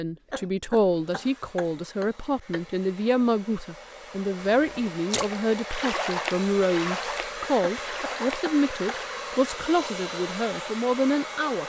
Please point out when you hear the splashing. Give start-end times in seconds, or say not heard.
4.4-9.1.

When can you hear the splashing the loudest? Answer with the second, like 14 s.
6 s.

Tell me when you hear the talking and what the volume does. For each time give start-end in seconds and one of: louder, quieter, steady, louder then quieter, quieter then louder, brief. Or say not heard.
0.0-11.6 steady.